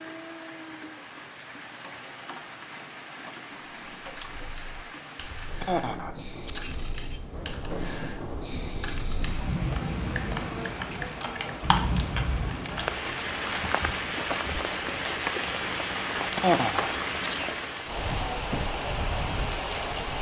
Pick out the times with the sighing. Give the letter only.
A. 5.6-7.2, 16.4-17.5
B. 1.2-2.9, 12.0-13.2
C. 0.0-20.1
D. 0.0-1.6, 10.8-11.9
A.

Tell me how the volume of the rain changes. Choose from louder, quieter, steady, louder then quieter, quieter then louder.
louder.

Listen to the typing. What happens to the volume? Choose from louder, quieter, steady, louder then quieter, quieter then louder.
louder.